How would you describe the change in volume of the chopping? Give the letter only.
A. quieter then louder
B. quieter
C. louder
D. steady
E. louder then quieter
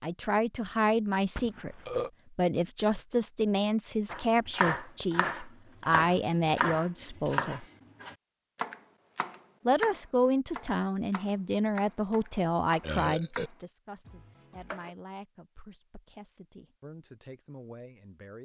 B.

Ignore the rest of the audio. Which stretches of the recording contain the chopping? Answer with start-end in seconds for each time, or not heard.
4.1-14.9.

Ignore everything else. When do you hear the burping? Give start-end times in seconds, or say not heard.
1.4-2.1, 12.8-13.5.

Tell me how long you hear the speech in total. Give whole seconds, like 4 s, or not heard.
16 s.